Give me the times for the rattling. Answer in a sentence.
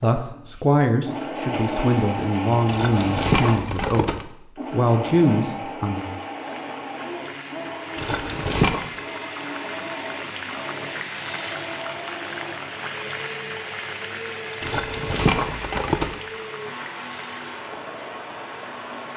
The rattling can be heard from 2.6 to 4.2 s, from 8.0 to 8.8 s and from 14.6 to 16.1 s.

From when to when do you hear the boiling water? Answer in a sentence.
You can hear the boiling water from 6.0 to 19.1 s.